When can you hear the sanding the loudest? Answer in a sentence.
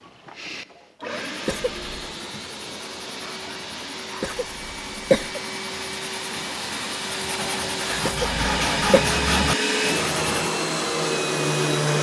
The loudest moment of the sanding is at 9 seconds.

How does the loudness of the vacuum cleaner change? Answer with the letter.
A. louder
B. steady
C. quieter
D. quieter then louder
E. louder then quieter
A.